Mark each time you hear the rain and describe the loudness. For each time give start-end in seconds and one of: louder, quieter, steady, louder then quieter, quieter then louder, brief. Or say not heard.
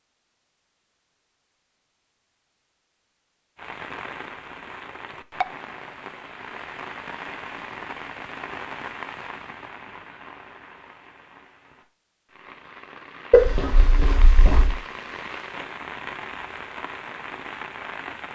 3.5-18.2 quieter then louder.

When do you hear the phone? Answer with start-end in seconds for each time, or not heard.
13.3-14.8.